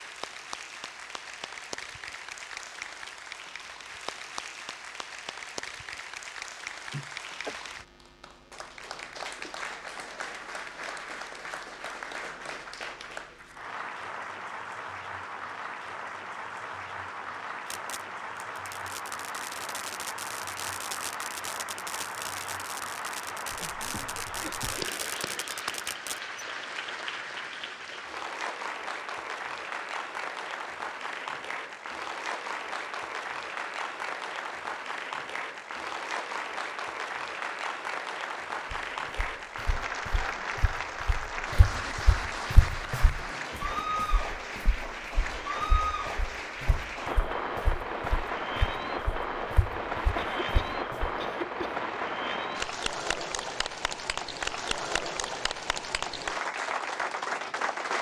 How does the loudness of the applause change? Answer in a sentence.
The loudness of the applause goes up.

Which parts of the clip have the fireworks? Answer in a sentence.
The fireworks can be heard from 17.7 to 26.4 s.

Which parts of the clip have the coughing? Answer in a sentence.
You can hear the coughing from 6.9 to 7.5 s, from 23.5 to 24.9 s and from 50.1 to 51.5 s.